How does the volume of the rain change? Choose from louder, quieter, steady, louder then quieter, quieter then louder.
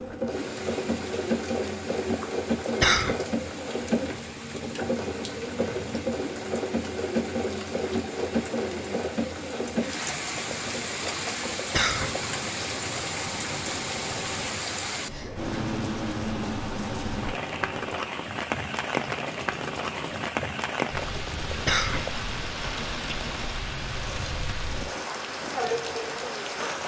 louder.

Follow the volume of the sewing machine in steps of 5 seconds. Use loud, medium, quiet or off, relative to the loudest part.
loud, loud, medium, medium, medium, medium.